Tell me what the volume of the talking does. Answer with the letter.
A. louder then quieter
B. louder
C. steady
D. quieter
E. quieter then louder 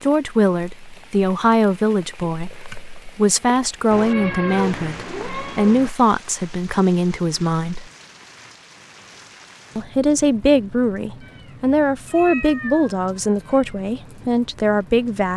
C.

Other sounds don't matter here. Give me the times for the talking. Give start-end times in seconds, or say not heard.
0.0-7.8, 9.8-15.3.